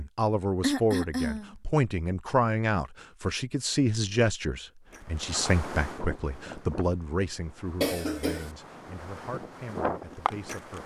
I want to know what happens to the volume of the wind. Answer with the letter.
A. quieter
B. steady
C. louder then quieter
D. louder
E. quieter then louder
E.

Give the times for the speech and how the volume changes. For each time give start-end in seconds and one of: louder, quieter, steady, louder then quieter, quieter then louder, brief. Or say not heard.
0.0-10.8 quieter.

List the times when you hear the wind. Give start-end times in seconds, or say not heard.
4.9-10.8.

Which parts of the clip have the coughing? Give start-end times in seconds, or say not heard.
0.6-1.6, 7.8-8.5.